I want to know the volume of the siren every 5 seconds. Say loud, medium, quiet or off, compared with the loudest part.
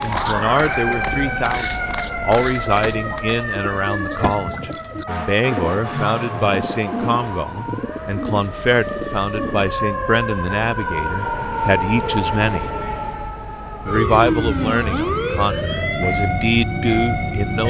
loud, medium, loud, loud.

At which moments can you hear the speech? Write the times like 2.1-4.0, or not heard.
0.0-12.7, 13.8-17.6.